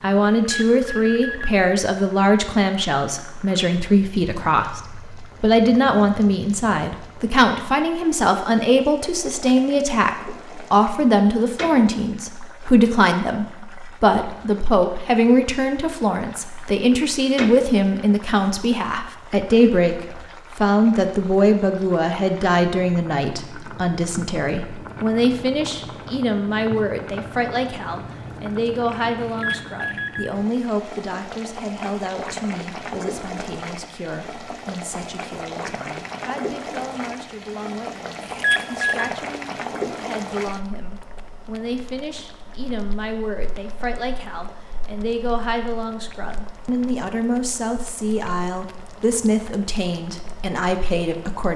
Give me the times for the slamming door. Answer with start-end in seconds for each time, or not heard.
not heard.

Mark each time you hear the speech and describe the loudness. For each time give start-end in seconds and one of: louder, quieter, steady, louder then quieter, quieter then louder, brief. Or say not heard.
0.0-51.5 quieter then louder.